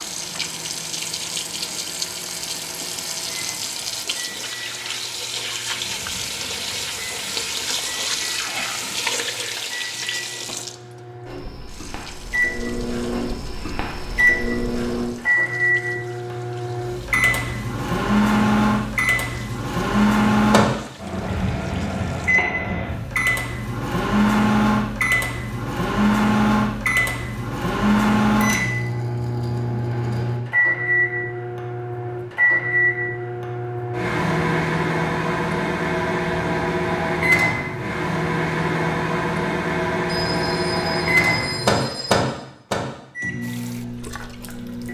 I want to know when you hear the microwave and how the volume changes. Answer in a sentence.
You can hear the microwave from 0.0 to 44.8 s, getting louder.